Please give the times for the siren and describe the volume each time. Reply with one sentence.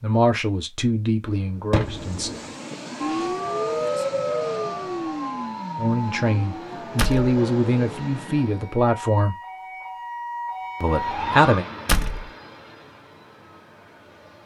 You can hear the siren from 3.0 to 11.6 s, getting quieter then louder.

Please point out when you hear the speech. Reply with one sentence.
You can hear the speech from 0.0 to 2.3 s, from 5.8 to 9.3 s and from 10.8 to 11.7 s.